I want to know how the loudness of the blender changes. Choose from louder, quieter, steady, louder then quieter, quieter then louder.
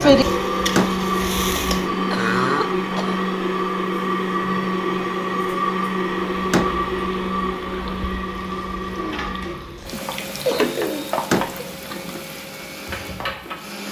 quieter.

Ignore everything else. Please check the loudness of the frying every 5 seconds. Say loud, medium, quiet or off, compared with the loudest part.
loud, quiet, medium.